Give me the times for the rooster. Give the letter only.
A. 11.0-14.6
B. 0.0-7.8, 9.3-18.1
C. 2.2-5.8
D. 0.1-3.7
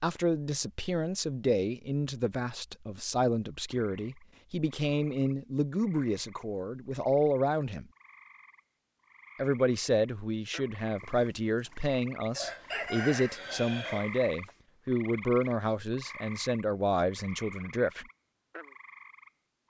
A.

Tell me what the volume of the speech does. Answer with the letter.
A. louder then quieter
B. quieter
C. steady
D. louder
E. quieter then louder
C.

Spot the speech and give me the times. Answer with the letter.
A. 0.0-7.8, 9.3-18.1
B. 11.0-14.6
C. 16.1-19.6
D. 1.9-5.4
A.